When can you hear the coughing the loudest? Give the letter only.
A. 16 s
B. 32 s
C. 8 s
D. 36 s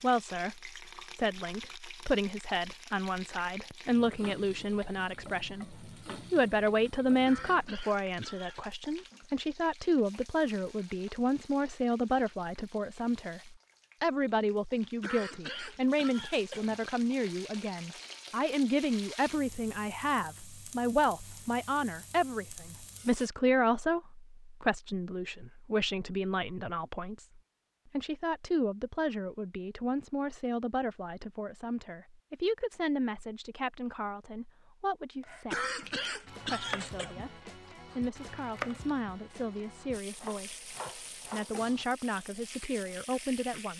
D.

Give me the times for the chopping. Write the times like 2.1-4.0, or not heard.
35.2-41.7.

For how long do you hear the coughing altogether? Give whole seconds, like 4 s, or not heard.
5 s.